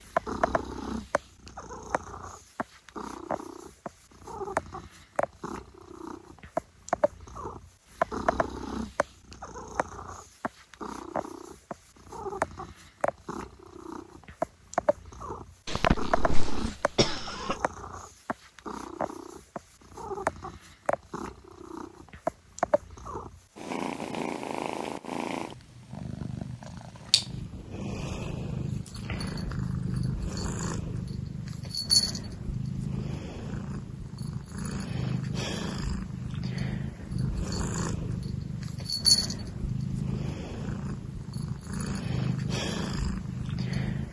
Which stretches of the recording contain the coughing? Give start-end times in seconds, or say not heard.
15.7-17.6.